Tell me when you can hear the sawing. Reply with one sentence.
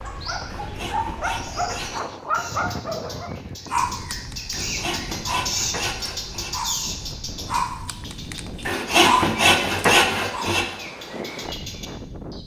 You can hear the sawing from 0.6 to 2.1 s, from 4.5 to 6.5 s and from 8.7 to 10.7 s.